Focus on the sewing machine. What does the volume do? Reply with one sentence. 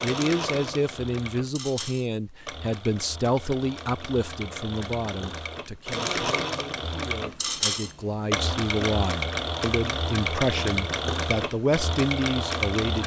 The volume of the sewing machine goes up.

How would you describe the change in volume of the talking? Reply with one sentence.
The volume of the talking goes down, then up.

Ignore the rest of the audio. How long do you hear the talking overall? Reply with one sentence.
You can hear the talking for 13 seconds altogether.